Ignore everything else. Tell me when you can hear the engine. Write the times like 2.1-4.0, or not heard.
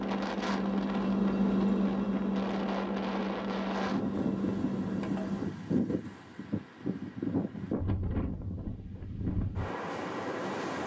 0.0-5.5.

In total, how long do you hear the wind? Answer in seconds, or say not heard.
11 s.